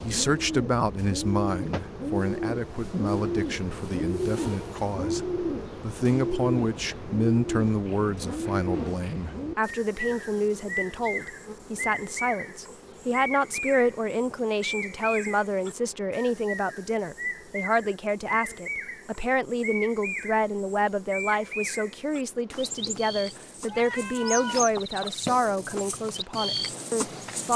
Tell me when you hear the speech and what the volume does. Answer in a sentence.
You can hear the speech from 0.0 to 27.5 s, at a steady volume.